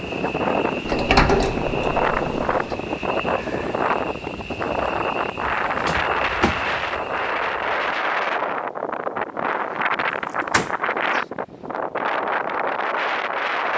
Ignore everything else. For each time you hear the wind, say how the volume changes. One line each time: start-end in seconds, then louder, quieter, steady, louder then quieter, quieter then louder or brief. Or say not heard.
0.0-13.7 steady.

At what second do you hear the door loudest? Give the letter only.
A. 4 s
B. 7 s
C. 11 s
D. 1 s
D.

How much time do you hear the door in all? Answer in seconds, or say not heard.
4 s.